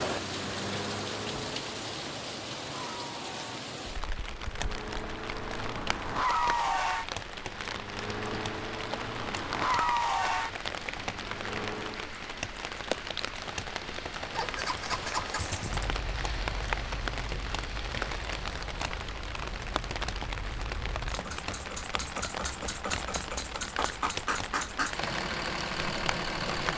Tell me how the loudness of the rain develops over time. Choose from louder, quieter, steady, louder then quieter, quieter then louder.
steady.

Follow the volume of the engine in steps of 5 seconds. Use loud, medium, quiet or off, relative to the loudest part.
medium, loud, loud, medium, medium, loud.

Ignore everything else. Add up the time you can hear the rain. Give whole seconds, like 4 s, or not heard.
27 s.